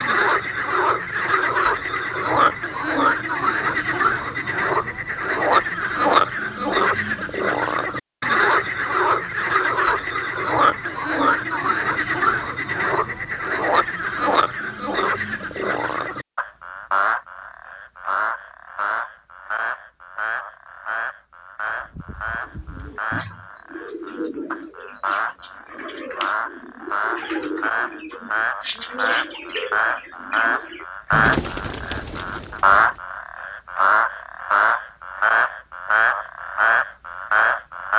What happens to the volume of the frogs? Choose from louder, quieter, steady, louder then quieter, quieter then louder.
quieter then louder.